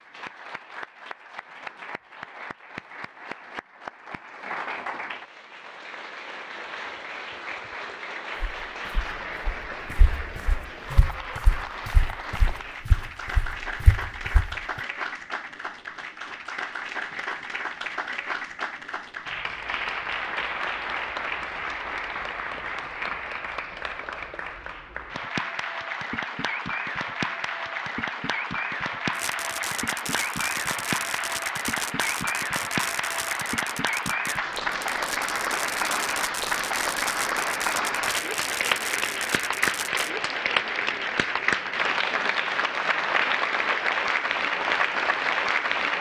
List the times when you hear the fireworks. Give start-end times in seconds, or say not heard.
29.1-40.1.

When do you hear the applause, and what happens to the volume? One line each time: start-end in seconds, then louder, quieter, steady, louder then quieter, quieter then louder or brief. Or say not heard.
0.0-45.9 louder.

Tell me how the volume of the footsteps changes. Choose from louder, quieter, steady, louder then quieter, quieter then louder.
louder.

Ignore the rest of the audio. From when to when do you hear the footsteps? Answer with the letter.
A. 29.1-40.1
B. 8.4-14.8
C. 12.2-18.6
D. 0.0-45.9
B.